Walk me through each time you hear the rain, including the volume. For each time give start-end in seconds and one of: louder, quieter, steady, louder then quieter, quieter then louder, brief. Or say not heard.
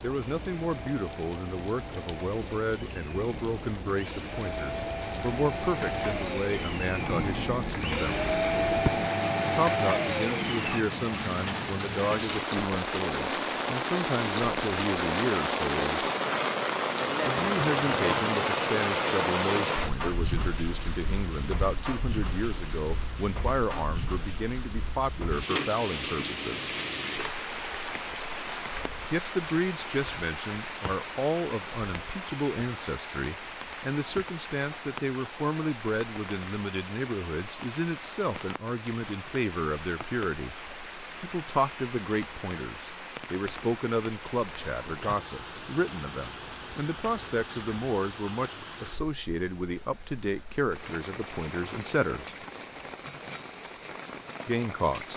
0.0-55.1 louder then quieter.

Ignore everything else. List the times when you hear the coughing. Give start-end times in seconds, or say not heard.
not heard.